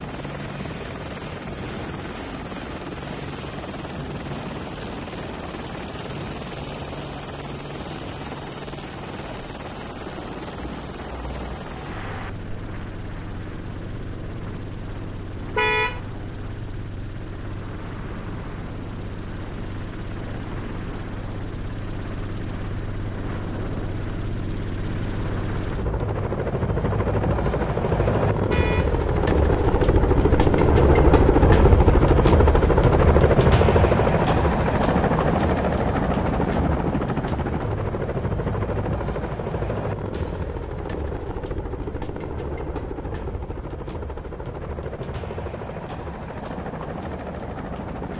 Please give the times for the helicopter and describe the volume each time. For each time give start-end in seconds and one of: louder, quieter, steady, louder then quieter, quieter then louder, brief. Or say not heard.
0.0-48.1 louder then quieter.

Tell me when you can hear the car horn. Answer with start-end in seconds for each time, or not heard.
15.6-16.0, 28.4-28.9.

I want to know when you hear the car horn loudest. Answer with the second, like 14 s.
16 s.